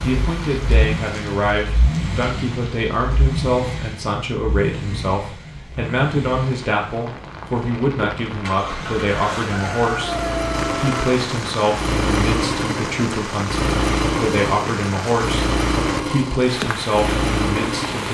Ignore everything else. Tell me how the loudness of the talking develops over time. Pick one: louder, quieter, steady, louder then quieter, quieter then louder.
steady.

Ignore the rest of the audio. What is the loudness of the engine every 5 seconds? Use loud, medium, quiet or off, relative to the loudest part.
medium, medium, loud, loud.